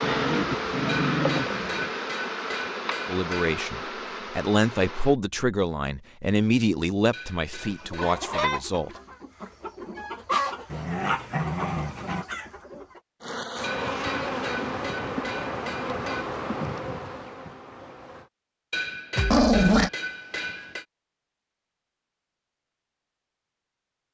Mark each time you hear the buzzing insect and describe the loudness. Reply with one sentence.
The buzzing insect can be heard from 0.0 to 5.2 s, getting quieter; and from 13.2 to 18.3 s, getting quieter.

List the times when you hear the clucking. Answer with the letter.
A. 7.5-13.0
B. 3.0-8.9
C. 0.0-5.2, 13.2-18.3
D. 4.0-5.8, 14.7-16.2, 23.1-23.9
A.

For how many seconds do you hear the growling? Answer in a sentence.
You can hear the growling for 4 seconds altogether.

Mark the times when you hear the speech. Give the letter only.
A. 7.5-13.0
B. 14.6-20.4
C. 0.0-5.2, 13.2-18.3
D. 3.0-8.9
D.